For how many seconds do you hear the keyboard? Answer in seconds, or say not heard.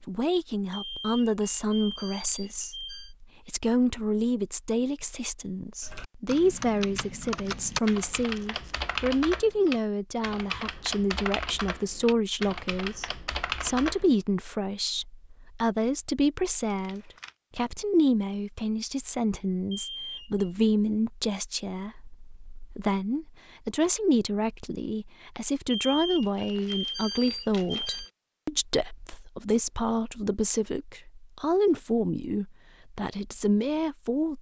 8 s.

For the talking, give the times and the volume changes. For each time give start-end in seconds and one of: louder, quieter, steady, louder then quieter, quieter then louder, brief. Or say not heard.
0.0-34.3 steady.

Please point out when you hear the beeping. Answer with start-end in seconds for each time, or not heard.
0.7-3.1, 19.7-20.4, 25.7-28.1.